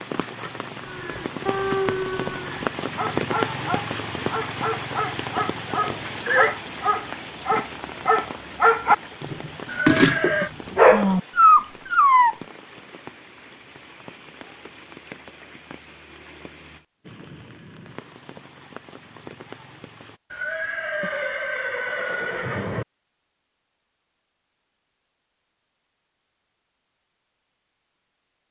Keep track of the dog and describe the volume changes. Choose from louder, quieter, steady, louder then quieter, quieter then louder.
louder.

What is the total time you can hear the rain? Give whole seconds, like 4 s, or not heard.
20 s.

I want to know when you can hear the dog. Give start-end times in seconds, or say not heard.
0.8-12.3.